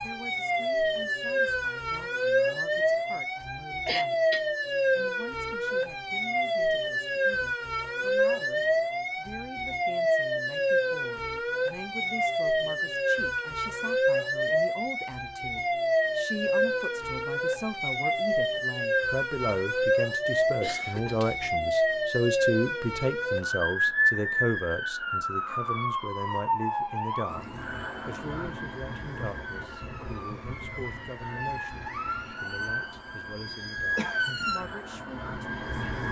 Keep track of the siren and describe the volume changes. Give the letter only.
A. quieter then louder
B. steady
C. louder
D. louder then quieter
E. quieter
E.